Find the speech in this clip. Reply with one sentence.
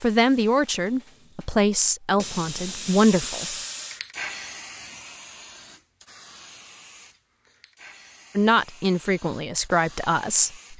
The speech can be heard from 0.0 to 3.5 s and from 8.3 to 10.7 s.